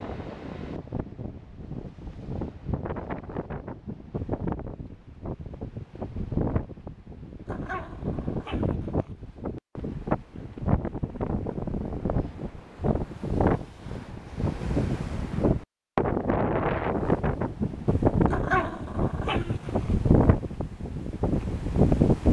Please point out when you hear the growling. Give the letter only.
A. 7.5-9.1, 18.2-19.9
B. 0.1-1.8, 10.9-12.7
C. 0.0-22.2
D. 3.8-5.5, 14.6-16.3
A.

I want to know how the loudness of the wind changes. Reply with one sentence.
The volume of the wind goes up.